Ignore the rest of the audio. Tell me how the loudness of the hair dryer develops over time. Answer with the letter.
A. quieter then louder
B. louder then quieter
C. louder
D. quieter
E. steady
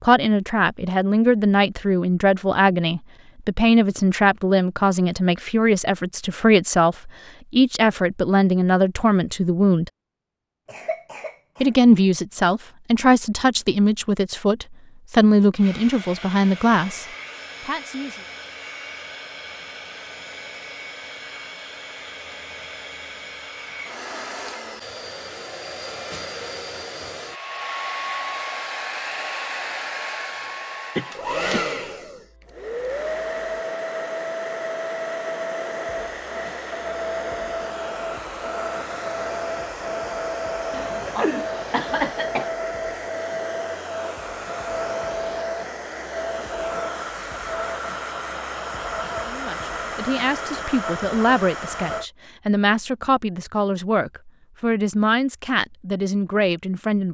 C.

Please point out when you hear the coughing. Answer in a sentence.
You can hear the coughing from 10.7 to 11.8 s, from 30.9 to 31.8 s and from 40.7 to 42.5 s.